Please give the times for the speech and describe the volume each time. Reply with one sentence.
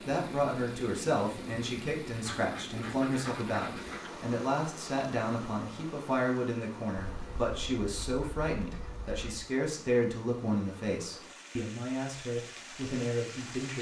The speech can be heard from 0.0 to 13.7 s, at a steady volume.